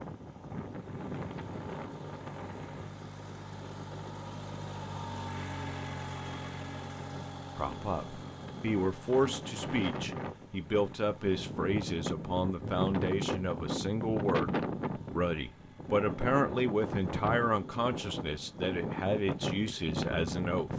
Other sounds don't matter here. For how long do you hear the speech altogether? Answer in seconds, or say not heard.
13 s.